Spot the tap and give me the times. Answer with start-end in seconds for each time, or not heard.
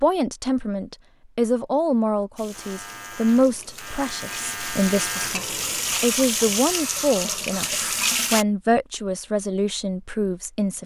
2.4-8.4.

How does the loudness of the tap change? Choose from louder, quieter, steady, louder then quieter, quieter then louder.
louder.